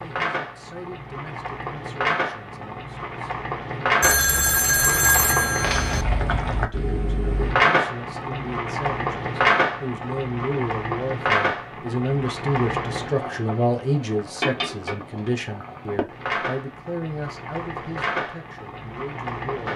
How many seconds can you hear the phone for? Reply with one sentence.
The phone can be heard for 2 seconds in total.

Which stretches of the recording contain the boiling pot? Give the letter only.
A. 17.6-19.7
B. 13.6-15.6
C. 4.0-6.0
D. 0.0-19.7
D.